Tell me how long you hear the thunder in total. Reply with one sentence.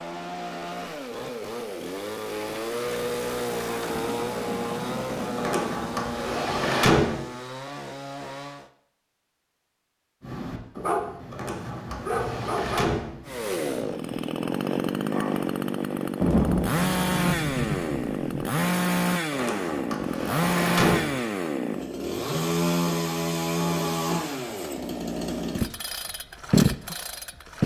The thunder can be heard for 6 seconds in total.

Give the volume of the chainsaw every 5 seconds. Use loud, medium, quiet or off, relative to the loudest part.
medium, medium, loud, loud, loud, loud.